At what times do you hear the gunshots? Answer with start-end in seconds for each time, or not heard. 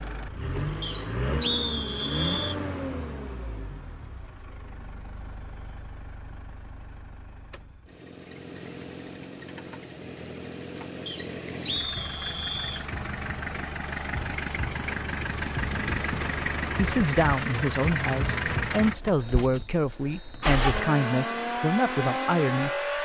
not heard.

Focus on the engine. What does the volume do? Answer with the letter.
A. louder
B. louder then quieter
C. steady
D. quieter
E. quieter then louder
E.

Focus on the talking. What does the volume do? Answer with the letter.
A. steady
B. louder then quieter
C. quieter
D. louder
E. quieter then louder
A.